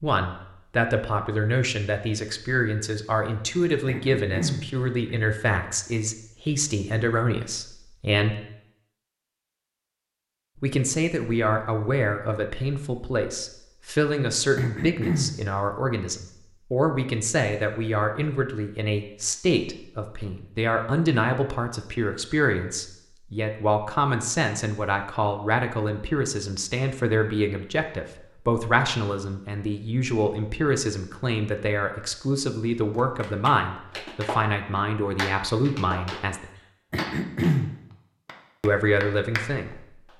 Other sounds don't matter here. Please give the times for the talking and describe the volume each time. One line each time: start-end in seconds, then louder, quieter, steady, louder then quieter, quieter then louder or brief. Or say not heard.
0.0-8.3 steady
10.6-36.5 steady
38.6-40.1 brief.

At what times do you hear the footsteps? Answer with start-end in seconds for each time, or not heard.
not heard.